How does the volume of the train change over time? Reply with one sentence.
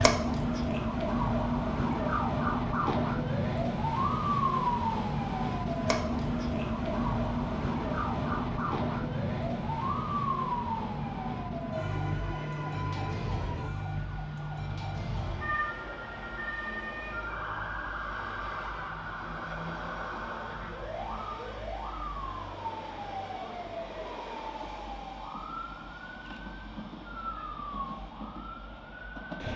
The loudness of the train goes down.